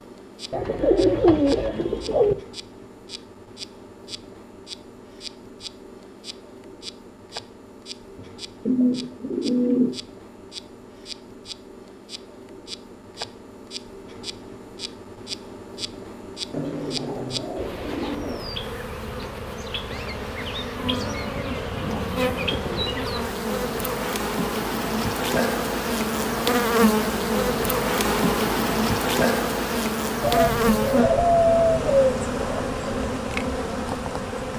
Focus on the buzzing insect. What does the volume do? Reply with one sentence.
The volume of the buzzing insect goes up.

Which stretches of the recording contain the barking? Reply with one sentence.
The barking can't be heard in this clip.